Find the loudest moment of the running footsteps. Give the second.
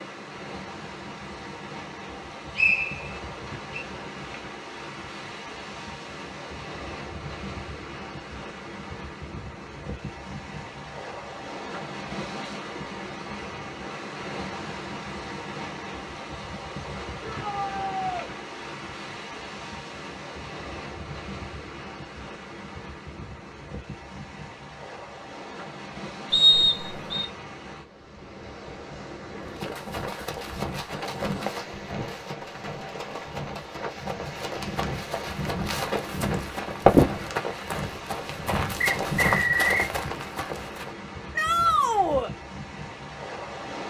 37 s.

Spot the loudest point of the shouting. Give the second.
42 s.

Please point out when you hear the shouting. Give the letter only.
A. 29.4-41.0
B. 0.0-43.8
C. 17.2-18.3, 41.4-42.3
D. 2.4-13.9
C.